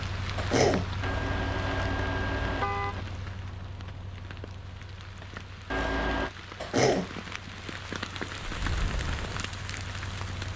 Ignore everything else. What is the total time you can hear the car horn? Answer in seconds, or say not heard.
3 s.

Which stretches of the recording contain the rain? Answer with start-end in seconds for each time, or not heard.
0.0-10.5.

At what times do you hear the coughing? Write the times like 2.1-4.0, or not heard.
0.3-0.9, 6.6-7.1.